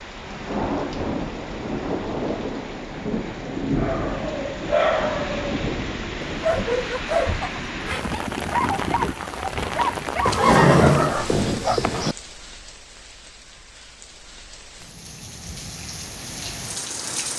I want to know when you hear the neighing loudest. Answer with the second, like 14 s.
11 s.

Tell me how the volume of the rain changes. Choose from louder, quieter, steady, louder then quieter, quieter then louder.
quieter.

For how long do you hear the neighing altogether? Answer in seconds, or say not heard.
2 s.